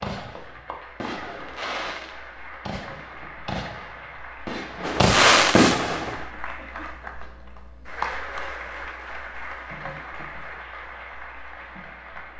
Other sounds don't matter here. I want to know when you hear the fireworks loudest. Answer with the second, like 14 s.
5 s.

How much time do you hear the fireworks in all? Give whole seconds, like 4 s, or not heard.
6 s.